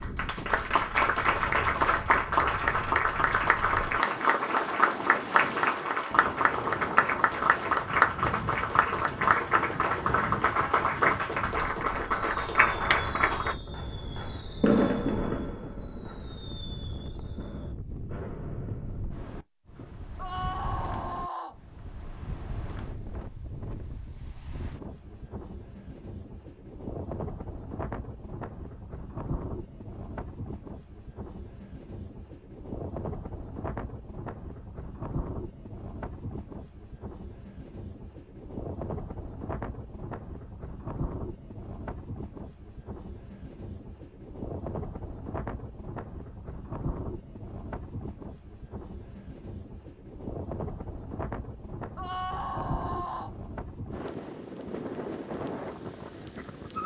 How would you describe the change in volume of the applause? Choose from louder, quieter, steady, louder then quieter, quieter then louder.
steady.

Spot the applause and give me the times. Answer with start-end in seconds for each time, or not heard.
0.0-13.6.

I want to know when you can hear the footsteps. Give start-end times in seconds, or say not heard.
not heard.